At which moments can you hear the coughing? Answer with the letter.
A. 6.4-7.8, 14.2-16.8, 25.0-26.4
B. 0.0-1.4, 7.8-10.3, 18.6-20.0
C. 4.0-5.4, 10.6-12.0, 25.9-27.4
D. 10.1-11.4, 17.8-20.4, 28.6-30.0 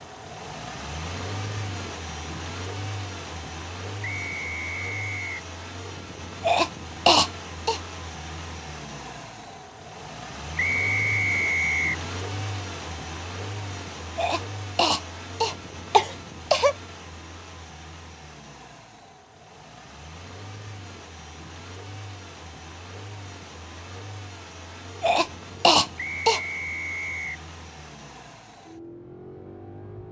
A.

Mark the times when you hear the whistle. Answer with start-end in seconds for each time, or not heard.
4.0-5.4, 10.6-12.0, 25.9-27.4.